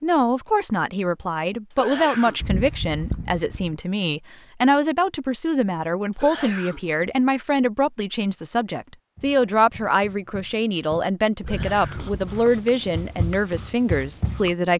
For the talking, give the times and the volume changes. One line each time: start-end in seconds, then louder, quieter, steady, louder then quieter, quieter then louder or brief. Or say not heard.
0.0-14.7 steady.